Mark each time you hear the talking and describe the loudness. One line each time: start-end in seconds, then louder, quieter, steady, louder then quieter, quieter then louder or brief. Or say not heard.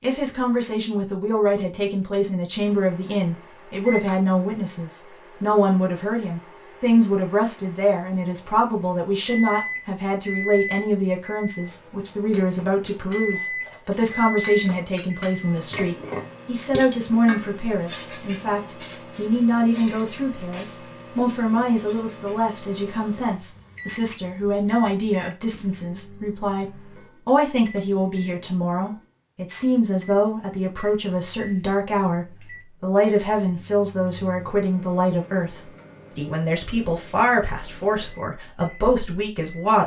0.0-39.8 steady.